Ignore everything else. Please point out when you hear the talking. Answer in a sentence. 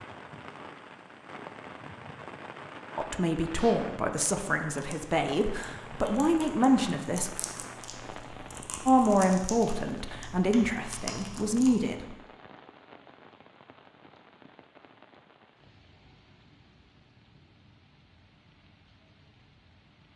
The talking can be heard from 3.0 to 7.3 s and from 8.8 to 12.2 s.